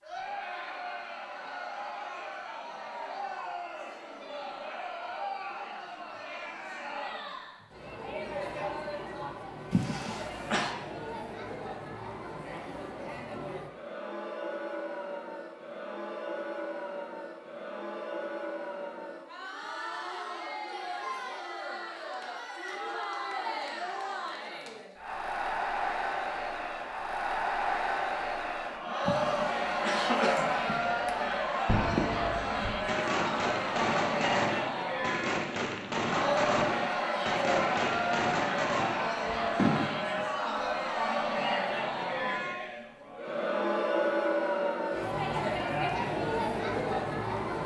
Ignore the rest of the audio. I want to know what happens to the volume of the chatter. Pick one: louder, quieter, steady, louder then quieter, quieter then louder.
louder.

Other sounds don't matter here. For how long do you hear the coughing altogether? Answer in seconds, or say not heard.
3 s.